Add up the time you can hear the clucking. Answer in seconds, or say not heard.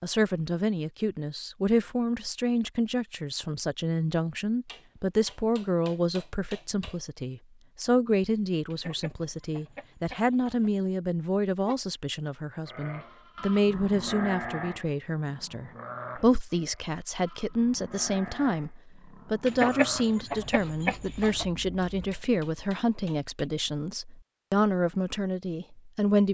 4 s.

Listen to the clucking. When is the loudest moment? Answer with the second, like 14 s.
20 s.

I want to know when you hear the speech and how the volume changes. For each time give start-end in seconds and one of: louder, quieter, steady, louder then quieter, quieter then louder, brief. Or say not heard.
0.0-26.2 steady.